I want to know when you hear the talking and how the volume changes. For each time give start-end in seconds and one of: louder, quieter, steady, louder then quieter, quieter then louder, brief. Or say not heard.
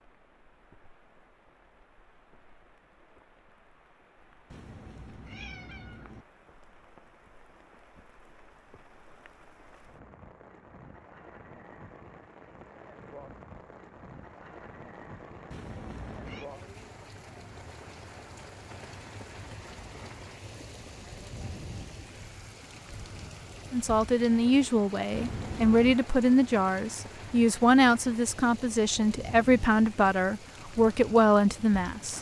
23.7-32.1 steady.